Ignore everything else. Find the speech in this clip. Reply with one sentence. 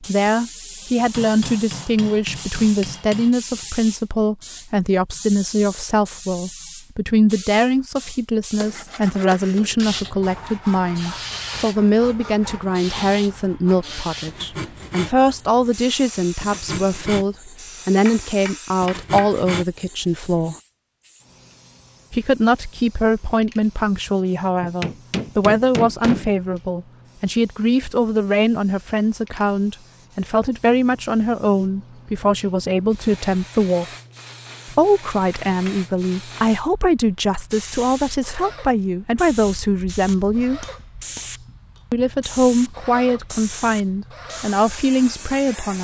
You can hear the speech from 0.0 to 20.6 s, from 22.1 to 33.9 s, from 34.6 to 40.6 s and from 41.9 to 45.7 s.